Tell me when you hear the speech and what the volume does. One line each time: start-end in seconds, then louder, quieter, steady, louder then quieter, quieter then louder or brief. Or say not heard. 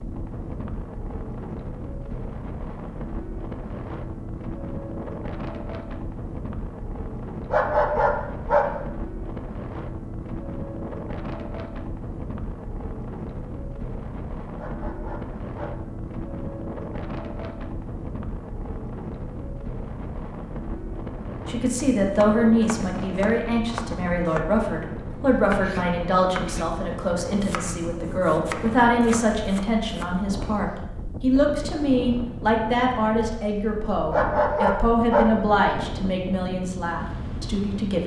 21.4-38.0 steady.